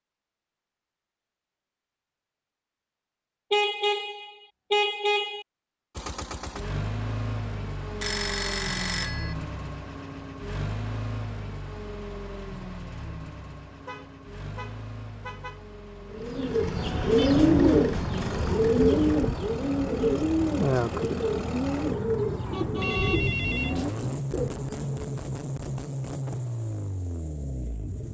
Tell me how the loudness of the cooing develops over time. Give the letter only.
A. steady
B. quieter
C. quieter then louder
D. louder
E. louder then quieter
B.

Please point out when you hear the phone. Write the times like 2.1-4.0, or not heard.
8.0-9.3, 22.8-24.1.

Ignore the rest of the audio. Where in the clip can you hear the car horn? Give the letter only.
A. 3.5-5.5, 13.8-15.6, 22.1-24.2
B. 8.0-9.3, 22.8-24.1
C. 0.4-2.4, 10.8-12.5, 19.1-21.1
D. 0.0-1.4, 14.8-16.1
A.